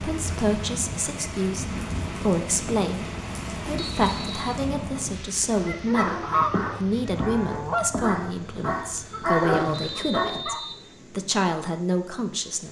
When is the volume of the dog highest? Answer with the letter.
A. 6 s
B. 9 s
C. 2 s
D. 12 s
B.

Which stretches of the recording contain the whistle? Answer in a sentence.
The whistle can be heard from 3.8 to 4.6 s and from 9.7 to 10.8 s.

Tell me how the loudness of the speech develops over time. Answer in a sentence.
The volume of the speech stays about the same.